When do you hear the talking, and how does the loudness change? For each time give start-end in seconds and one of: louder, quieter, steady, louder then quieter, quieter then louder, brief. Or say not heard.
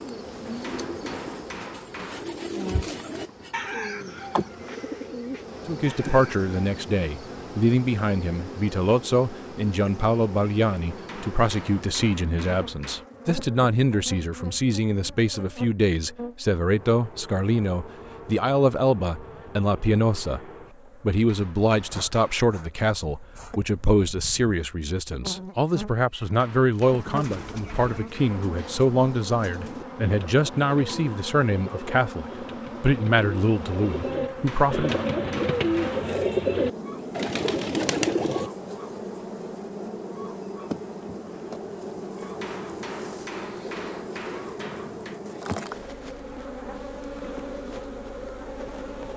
5.7-20.4 steady
21.0-35.0 steady.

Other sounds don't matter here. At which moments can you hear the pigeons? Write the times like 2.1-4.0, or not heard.
0.0-6.5, 26.8-38.5.